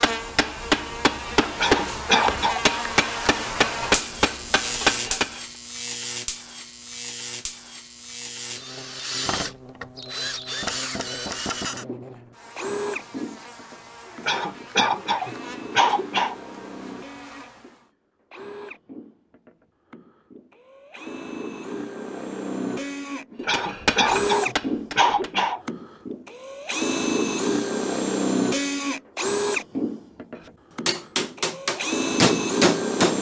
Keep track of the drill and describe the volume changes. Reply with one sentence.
The loudness of the drill goes down, then up.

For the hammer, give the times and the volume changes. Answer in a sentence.
You can hear the hammer from 0.0 to 5.4 s, at a steady volume; briefly from 23.4 to 25.3 s; and briefly from 30.9 to 33.1 s.